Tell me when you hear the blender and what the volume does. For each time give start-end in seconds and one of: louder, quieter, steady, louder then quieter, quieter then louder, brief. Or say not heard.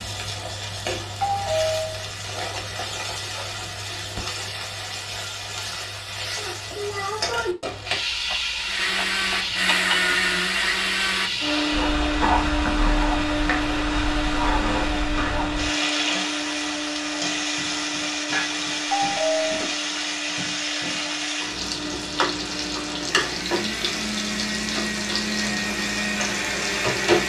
8.6-27.2 quieter then louder.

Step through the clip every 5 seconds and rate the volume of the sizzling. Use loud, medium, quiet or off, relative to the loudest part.
medium, loud, loud, loud, loud, loud.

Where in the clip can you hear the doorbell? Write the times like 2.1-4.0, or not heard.
1.2-1.9, 18.9-19.6.